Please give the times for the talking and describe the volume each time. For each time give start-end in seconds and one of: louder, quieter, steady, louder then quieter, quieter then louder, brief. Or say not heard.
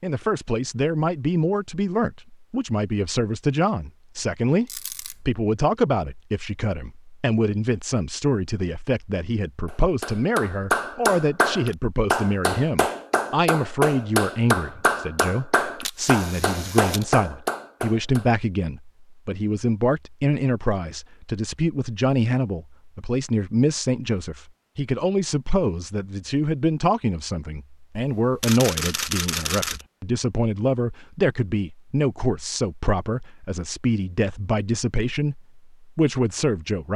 0.0-36.9 steady.